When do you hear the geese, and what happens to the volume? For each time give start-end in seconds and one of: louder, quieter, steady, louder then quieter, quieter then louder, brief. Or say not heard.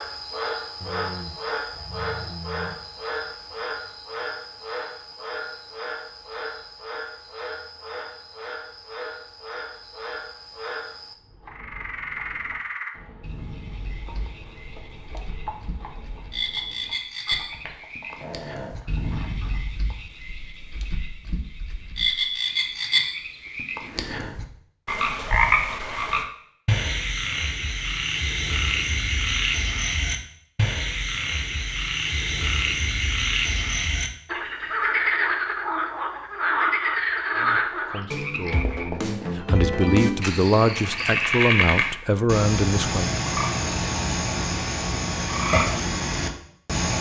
not heard.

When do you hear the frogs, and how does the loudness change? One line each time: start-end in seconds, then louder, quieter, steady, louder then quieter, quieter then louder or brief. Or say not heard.
0.0-46.9 louder.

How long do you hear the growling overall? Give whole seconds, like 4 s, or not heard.
4 s.